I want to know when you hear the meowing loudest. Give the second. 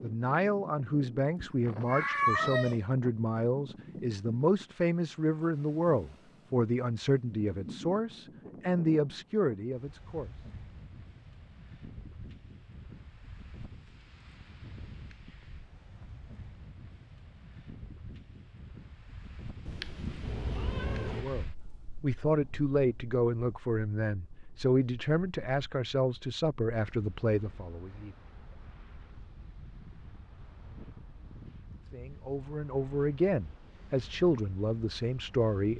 2 s.